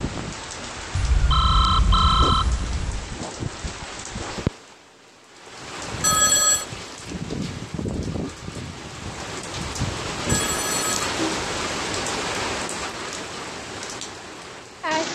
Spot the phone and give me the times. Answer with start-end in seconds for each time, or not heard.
0.9-3.1, 6.0-6.7, 10.2-11.1.